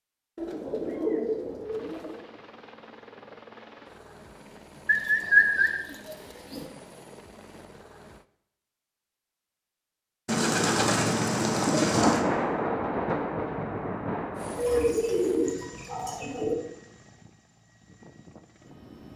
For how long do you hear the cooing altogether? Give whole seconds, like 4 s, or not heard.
8 s.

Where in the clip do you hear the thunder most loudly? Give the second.
12 s.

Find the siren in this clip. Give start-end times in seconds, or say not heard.
not heard.